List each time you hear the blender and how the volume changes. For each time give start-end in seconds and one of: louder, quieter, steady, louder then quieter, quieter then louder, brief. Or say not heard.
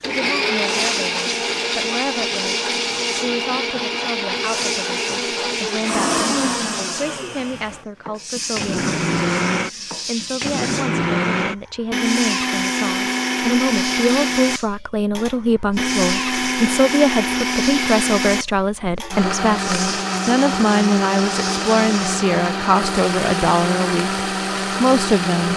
0.0-25.5 steady.